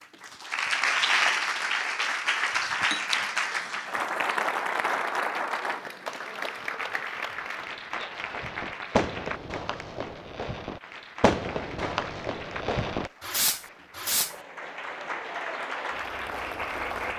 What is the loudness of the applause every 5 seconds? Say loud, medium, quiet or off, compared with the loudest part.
loud, medium, quiet, medium.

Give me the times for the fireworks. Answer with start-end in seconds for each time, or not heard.
8.2-14.3.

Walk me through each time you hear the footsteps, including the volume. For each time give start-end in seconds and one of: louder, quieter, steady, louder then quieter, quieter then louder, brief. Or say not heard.
not heard.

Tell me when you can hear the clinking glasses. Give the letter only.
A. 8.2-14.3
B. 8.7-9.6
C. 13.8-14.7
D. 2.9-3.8
D.